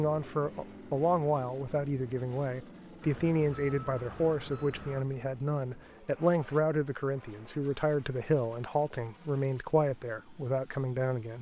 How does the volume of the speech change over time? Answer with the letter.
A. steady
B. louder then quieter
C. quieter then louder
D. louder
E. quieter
A.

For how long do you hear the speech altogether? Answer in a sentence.
The speech can be heard for 11 seconds in total.